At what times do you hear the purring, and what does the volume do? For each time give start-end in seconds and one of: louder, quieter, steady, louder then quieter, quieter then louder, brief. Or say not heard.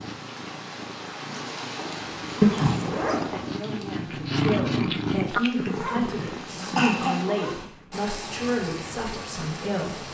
0.0-8.0 louder then quieter.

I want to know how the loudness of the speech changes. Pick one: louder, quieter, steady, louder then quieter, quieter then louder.
steady.